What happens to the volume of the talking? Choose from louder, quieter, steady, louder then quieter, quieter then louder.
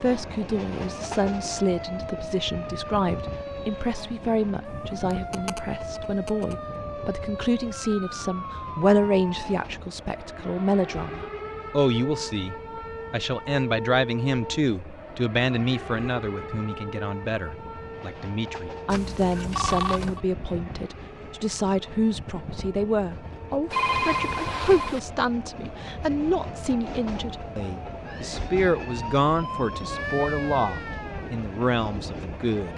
steady.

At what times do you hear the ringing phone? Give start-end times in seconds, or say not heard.
4.7-6.6, 18.9-20.2, 23.7-25.0.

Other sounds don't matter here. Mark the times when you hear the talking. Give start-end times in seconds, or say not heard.
0.0-32.7.